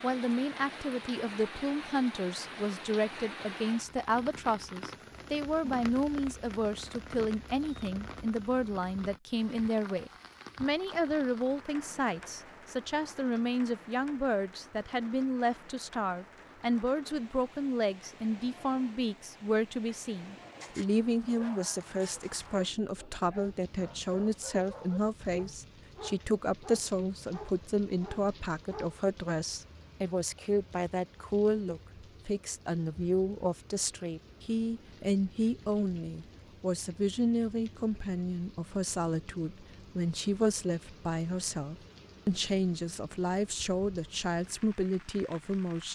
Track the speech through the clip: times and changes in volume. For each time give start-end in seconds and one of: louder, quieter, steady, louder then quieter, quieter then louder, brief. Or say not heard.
0.0-45.8 steady.